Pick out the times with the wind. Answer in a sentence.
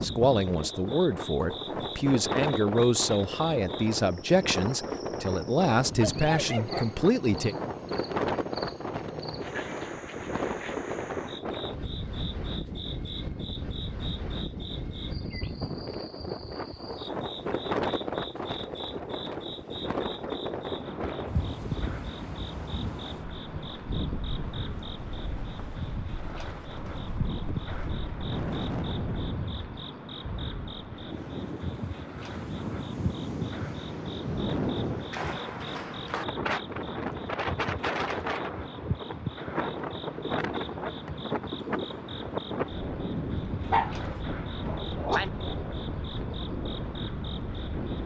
You can hear the wind from 0.0 to 48.0 s.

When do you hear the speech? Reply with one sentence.
The speech can be heard from 0.0 to 7.5 s.